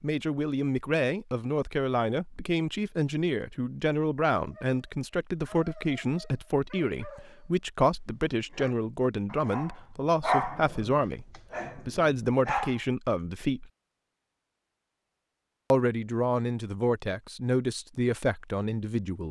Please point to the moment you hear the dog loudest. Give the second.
10 s.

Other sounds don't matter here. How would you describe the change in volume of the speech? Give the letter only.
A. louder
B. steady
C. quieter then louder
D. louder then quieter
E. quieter
B.